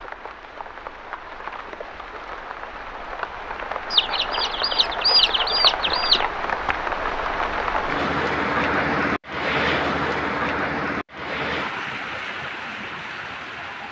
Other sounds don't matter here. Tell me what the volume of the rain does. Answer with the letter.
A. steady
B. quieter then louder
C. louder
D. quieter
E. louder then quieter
E.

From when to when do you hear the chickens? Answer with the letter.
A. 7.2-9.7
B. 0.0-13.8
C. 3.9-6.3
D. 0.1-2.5
C.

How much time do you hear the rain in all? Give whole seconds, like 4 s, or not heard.
14 s.